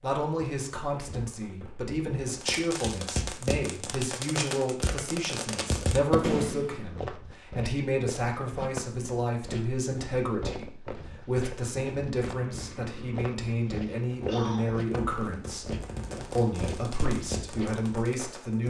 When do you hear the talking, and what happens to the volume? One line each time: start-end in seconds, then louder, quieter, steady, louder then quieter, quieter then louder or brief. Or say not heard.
0.0-18.6 steady.